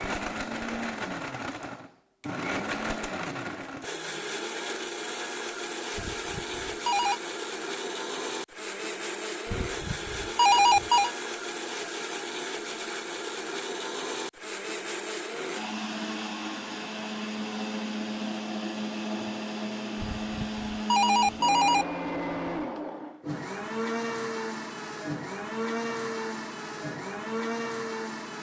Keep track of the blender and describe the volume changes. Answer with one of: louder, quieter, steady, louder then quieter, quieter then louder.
steady.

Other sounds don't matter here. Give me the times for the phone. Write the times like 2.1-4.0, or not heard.
6.0-7.2, 9.5-11.1, 20.0-21.9.